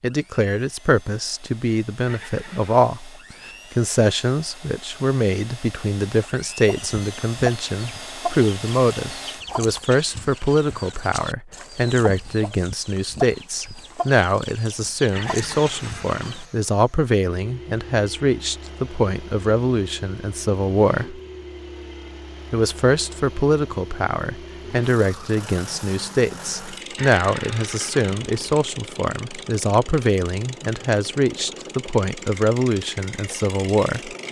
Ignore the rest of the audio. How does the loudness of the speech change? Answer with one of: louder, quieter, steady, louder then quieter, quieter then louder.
steady.